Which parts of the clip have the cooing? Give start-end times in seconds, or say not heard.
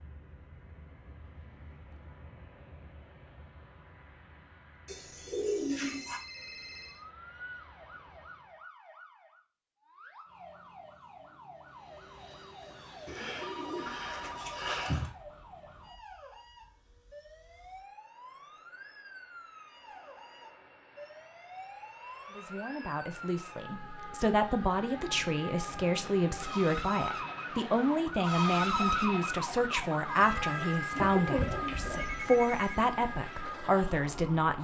4.8-6.2, 13.1-15.1, 30.9-32.0.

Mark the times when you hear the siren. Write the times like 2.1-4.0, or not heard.
6.2-34.6.